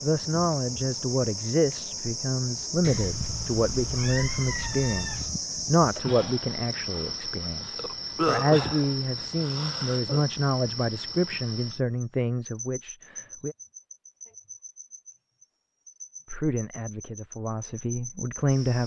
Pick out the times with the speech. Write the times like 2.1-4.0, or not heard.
0.0-13.6, 16.3-18.8.